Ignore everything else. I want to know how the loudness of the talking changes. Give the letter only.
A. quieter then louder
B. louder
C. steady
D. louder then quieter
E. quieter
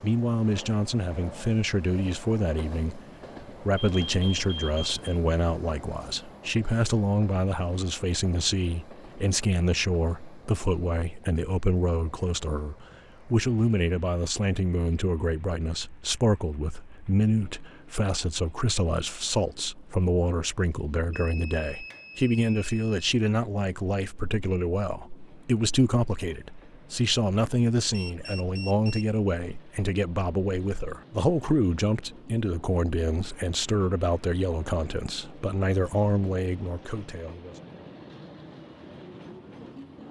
C.